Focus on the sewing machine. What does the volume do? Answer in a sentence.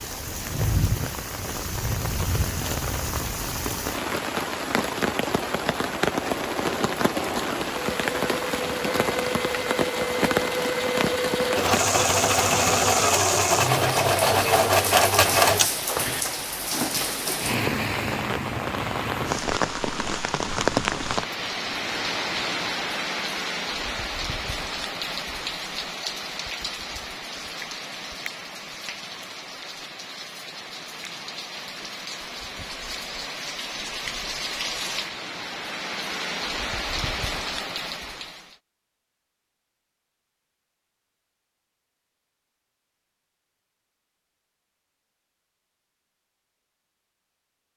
The volume of the sewing machine goes up.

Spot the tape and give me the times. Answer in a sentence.
You can't hear the tape here.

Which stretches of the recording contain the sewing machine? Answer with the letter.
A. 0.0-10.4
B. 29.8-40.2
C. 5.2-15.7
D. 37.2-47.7
C.